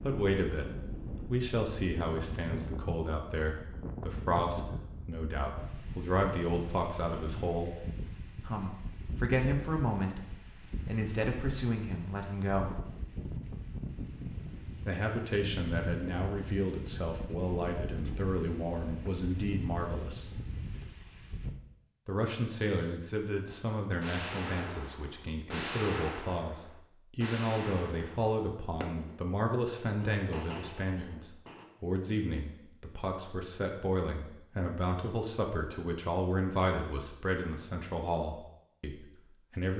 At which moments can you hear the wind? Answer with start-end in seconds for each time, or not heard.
0.0-21.6.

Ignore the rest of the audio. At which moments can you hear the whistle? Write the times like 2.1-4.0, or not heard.
not heard.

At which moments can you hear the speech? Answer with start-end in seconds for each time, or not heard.
0.0-7.8, 8.4-10.2, 10.8-12.8, 14.8-20.3, 22.1-39.7.